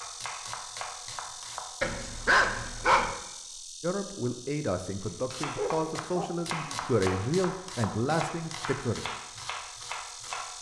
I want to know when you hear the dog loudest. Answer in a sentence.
The volume of the dog peaks at 2 seconds.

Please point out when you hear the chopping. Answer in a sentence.
The chopping can be heard from 0.0 to 1.9 s and from 5.0 to 10.5 s.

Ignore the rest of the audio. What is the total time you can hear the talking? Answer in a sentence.
The talking can be heard for 5 seconds in total.